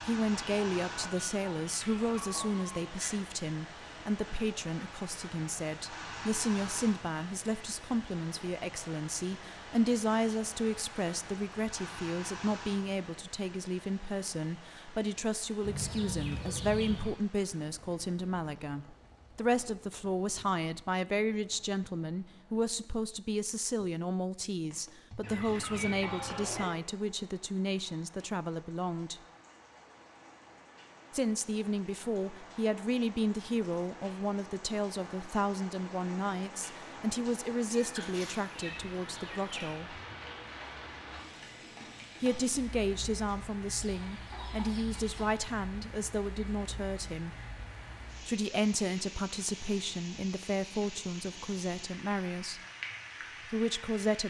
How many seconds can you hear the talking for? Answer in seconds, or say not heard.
48 s.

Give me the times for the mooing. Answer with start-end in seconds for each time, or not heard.
not heard.